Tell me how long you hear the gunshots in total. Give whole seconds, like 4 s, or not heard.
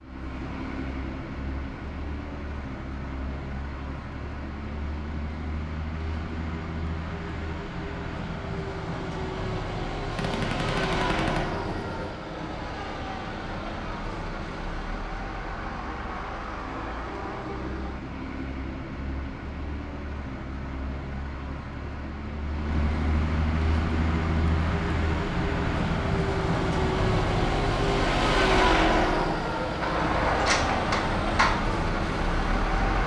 4 s.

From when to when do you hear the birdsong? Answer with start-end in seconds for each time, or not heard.
not heard.